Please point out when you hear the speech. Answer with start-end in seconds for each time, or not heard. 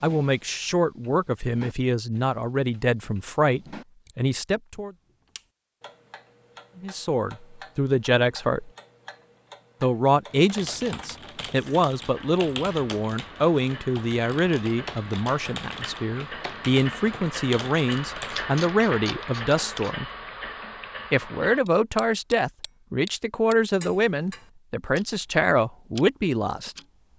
0.0-4.9, 6.8-8.7, 9.8-20.1, 21.1-26.8.